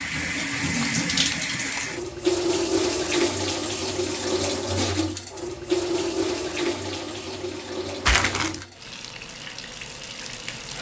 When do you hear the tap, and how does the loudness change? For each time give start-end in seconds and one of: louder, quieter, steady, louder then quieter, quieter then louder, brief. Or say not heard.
0.0-10.7 quieter.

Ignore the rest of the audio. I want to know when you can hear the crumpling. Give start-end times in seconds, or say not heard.
0.8-2.0, 8.1-8.7.